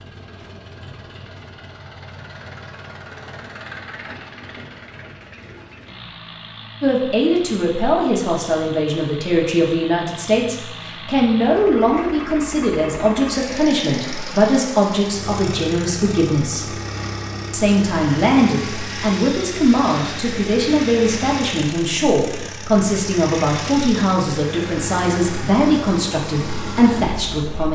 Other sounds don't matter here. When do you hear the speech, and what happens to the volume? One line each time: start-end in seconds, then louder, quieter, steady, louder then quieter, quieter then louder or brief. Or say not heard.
6.8-16.8 steady
17.5-27.6 steady.